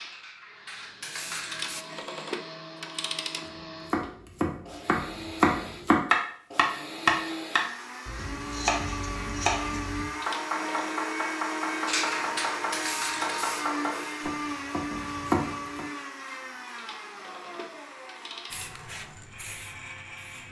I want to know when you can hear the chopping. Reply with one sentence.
The chopping can be heard from 3.9 to 15.8 s.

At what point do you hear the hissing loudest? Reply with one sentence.
The loudest moment of the hissing is at 12 seconds.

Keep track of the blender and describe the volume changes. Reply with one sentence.
The volume of the blender goes up, then down.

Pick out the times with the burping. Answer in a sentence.
You can't hear the burping here.